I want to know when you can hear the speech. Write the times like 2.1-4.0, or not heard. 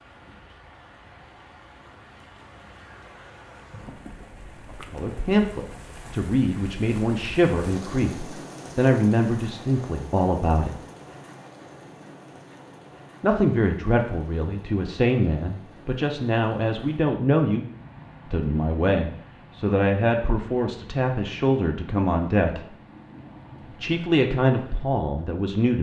4.9-10.8, 13.2-17.6, 18.3-22.7, 23.8-25.7.